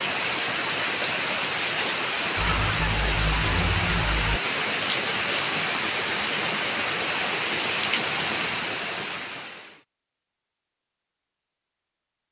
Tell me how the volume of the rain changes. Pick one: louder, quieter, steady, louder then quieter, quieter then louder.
steady.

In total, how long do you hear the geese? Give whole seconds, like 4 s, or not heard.
2 s.